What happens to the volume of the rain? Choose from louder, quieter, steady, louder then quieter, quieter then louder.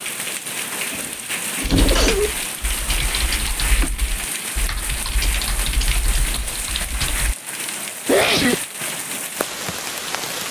steady.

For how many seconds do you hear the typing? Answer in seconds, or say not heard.
6 s.